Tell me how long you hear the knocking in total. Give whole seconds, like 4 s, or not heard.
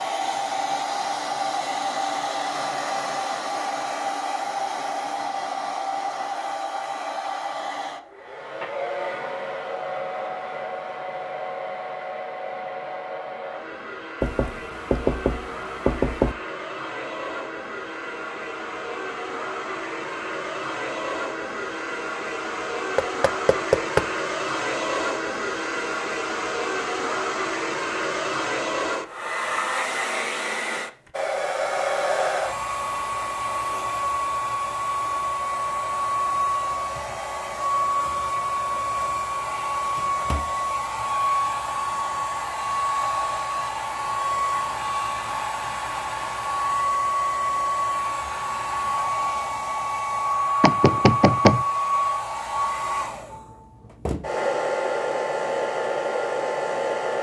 4 s.